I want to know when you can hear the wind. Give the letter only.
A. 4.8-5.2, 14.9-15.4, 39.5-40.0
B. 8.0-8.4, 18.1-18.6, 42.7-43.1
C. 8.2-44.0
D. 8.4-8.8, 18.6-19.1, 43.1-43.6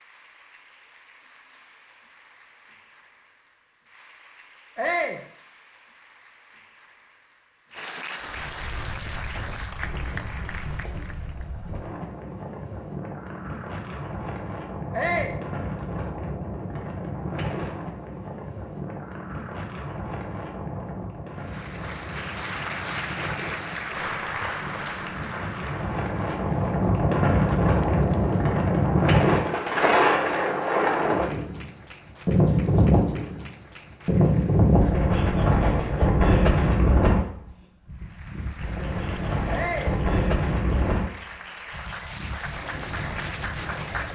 C.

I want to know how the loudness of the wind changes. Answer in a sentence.
The loudness of the wind goes up, then down.